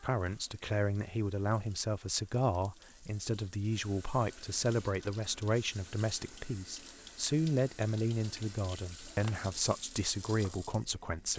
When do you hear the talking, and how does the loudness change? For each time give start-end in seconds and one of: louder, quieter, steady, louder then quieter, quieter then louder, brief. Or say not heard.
0.0-11.3 steady.